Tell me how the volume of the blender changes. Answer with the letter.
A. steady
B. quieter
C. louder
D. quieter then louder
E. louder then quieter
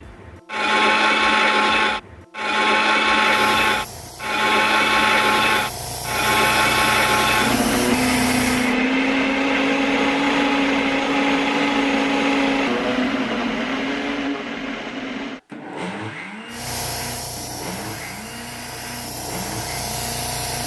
B.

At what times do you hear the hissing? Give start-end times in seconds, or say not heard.
3.1-8.8, 16.5-20.6.